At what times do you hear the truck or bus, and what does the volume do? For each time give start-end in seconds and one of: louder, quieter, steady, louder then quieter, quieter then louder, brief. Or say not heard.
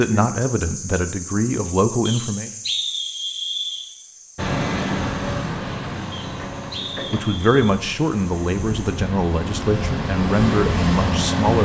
4.3-11.6 quieter then louder.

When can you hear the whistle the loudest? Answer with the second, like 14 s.
3 s.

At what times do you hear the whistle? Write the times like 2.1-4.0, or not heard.
2.0-3.9, 6.1-7.8.